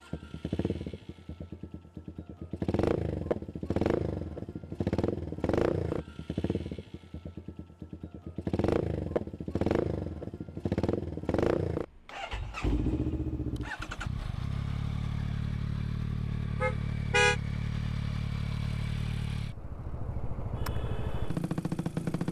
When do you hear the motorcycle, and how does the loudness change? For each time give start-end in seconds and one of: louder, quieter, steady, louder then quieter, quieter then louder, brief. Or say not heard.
0.0-22.2 steady.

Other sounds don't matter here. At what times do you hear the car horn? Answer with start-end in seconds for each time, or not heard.
16.6-17.4.